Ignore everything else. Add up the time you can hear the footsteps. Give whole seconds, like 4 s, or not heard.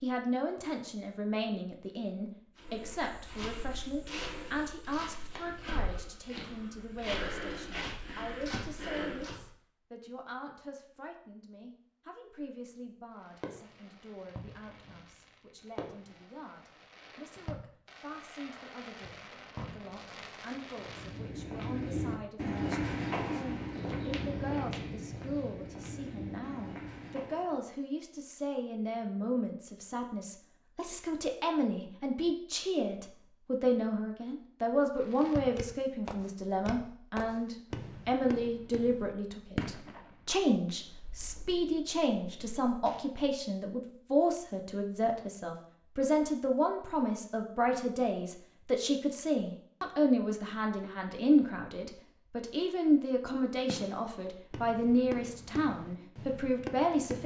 14 s.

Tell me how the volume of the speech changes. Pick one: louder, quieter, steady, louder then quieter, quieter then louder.
quieter then louder.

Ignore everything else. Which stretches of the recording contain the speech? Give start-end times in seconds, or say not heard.
0.0-57.2.